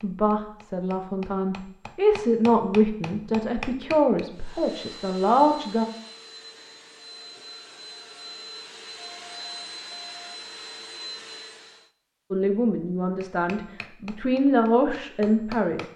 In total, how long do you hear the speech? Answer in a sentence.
You can hear the speech for 9 seconds altogether.